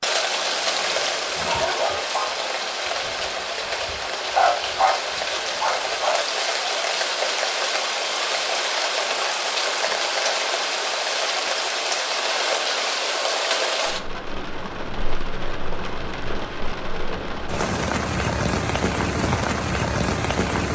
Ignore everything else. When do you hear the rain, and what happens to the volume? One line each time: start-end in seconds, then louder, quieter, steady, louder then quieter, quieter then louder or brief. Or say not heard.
0.0-20.7 steady.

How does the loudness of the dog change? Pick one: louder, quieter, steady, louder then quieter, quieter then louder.
quieter then louder.